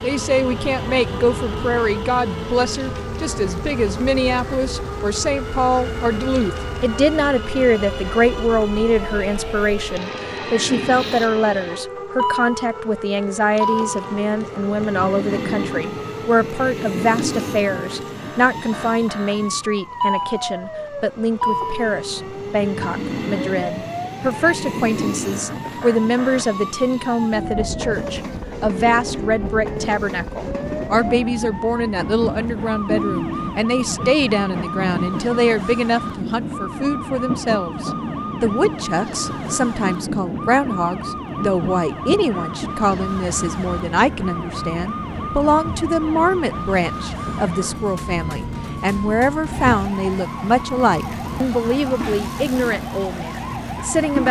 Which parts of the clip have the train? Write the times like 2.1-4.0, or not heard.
0.0-54.2.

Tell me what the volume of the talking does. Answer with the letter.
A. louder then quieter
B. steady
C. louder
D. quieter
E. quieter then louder
B.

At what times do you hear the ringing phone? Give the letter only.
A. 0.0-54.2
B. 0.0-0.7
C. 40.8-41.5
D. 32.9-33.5
D.